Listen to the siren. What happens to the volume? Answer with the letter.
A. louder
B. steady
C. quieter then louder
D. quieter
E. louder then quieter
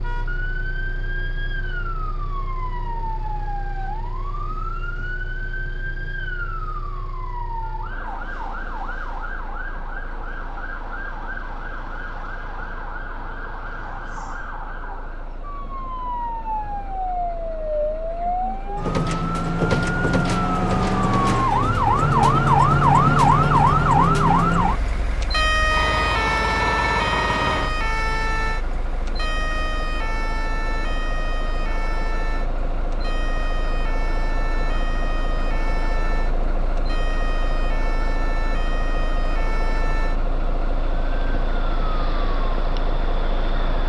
E.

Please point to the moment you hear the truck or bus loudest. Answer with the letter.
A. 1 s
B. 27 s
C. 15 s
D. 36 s
B.